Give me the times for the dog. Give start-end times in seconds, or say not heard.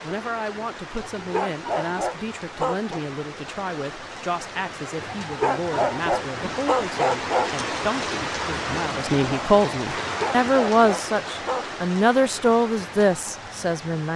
1.1-3.0, 5.2-7.5, 10.1-11.8.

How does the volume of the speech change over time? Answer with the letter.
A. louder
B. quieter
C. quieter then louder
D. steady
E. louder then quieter
A.